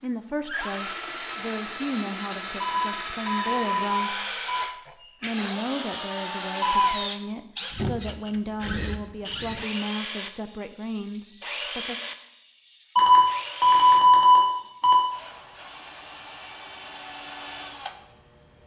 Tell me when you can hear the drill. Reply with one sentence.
The drill can be heard from 0.5 to 18.6 s.